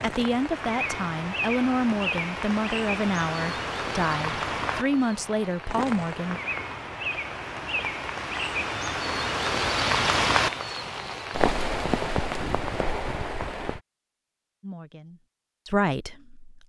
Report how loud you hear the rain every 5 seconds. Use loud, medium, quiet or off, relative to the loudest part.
loud, loud, loud, off.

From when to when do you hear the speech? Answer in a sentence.
The speech can be heard from 0.0 to 6.4 s and from 14.6 to 16.6 s.